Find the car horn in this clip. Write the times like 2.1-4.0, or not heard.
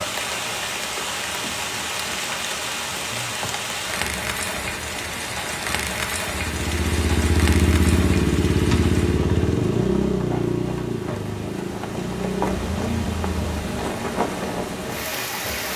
not heard.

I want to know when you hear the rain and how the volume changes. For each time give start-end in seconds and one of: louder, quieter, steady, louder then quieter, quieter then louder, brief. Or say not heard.
0.0-15.7 quieter then louder.